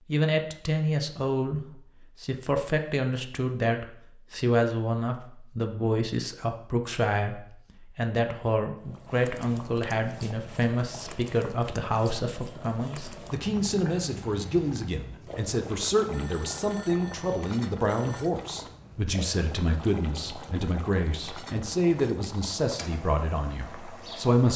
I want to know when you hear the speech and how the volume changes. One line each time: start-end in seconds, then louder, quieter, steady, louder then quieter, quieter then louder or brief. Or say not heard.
0.1-24.5 steady.